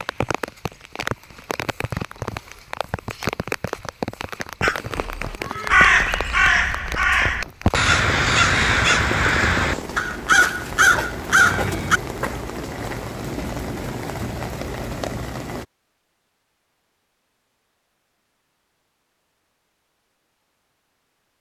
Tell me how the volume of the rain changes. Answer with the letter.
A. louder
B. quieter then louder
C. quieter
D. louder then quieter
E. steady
E.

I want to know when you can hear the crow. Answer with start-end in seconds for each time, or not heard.
4.6-12.0.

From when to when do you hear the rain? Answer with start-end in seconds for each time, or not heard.
0.0-15.7.